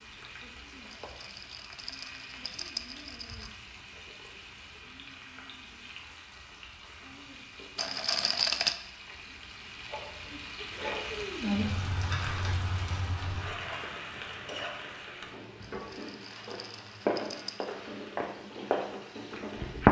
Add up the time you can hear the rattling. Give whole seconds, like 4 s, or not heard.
6 s.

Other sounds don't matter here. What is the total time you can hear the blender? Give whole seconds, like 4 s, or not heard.
not heard.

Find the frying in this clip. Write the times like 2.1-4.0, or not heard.
0.0-19.8.